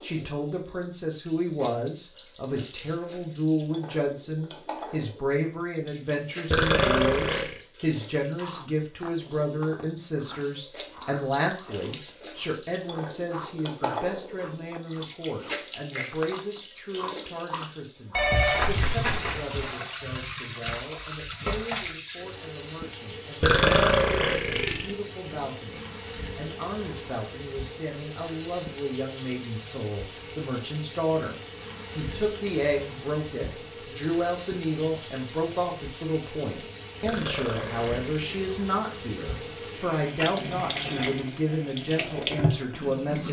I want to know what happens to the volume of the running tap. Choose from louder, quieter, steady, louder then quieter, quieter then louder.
louder.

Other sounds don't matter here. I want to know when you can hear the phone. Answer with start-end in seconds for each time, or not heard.
18.1-19.6.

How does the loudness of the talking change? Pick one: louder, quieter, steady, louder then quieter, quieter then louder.
quieter then louder.